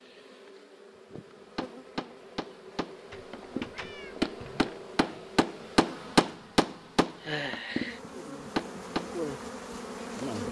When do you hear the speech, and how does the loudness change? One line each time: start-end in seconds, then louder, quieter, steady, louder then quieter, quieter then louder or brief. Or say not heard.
not heard.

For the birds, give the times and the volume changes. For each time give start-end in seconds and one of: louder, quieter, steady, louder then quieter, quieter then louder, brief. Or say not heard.
not heard.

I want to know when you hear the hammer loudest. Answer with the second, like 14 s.
6 s.